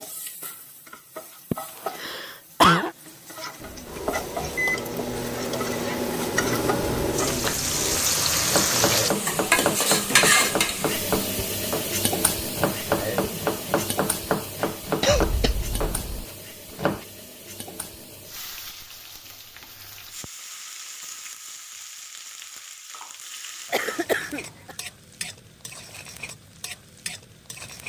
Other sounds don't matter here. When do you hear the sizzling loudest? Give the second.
10 s.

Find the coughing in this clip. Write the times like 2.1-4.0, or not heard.
1.5-2.9, 15.0-16.2, 23.7-24.8.